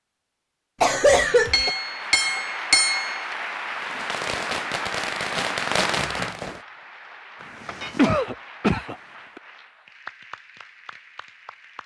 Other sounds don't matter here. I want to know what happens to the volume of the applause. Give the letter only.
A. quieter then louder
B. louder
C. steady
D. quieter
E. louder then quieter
D.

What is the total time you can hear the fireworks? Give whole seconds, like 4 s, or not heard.
3 s.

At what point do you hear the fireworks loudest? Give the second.
6 s.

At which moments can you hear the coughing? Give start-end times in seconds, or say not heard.
0.8-1.7, 7.9-9.4.